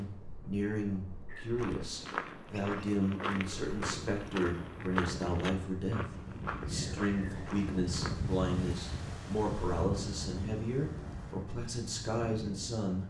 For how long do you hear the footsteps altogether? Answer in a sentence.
The footsteps can be heard for 7 seconds in total.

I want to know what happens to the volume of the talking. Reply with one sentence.
The loudness of the talking stays about the same.